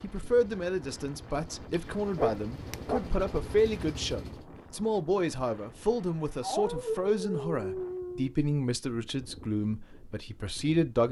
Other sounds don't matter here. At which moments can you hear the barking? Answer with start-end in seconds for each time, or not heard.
1.7-3.0, 6.4-8.3.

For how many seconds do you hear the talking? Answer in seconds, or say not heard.
11 s.